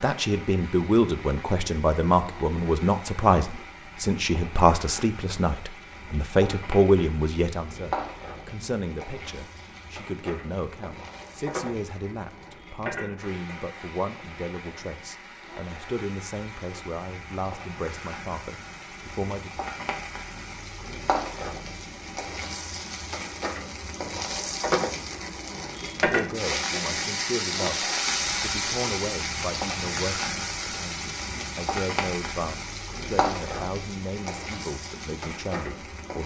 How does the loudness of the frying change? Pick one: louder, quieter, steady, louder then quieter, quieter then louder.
louder.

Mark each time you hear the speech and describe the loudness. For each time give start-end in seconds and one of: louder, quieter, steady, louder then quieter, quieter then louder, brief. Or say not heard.
0.0-19.6 quieter
25.8-36.2 steady.